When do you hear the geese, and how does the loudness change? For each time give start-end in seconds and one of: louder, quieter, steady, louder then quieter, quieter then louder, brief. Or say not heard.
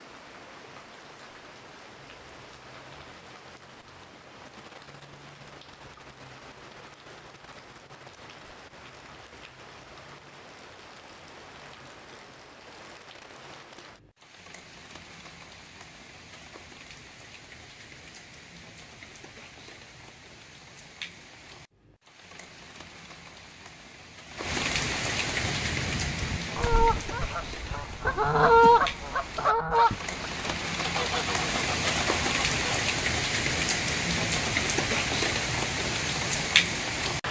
25.4-32.8 louder then quieter.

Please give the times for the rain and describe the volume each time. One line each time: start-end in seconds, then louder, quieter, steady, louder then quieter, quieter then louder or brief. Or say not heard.
0.0-37.2 louder.